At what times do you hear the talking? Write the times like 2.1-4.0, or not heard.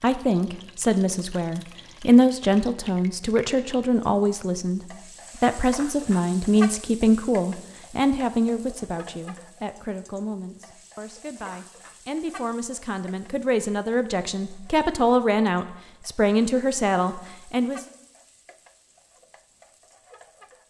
0.0-4.8, 5.4-17.9.